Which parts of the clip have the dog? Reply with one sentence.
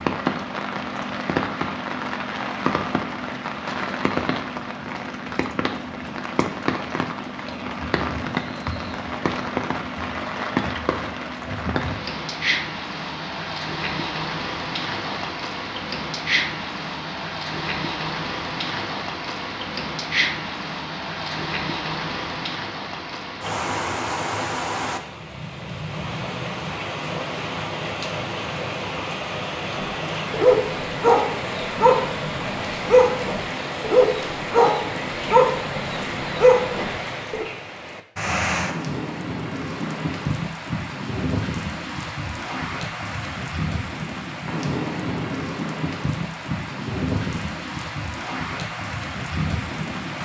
You can hear the dog from 29.8 to 37.5 s.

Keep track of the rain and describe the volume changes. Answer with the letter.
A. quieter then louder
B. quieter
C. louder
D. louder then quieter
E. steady
E.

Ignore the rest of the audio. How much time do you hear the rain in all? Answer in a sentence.
The rain can be heard for 50 seconds in total.